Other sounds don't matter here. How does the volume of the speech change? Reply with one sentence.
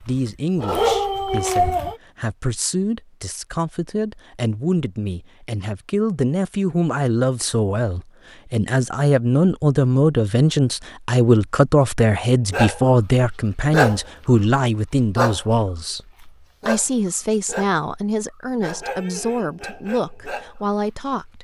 The volume of the speech goes up, then down.